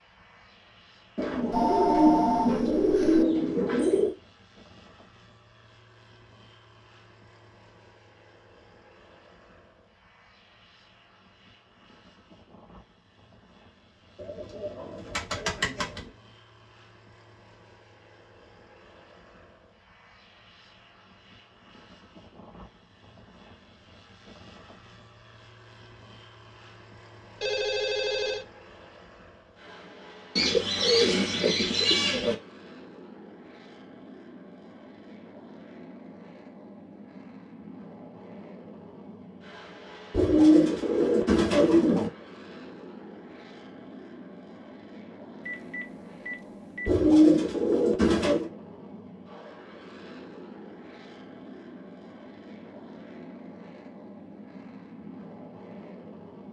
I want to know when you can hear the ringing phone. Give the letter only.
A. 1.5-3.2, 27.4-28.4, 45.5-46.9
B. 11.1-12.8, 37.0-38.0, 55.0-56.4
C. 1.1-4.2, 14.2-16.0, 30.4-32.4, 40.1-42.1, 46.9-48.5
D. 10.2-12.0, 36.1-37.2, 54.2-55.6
A.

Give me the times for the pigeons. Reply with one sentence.
You can hear the pigeons from 1.1 to 4.2 s, from 14.2 to 16.0 s, from 30.4 to 32.4 s, from 40.1 to 42.1 s and from 46.9 to 48.5 s.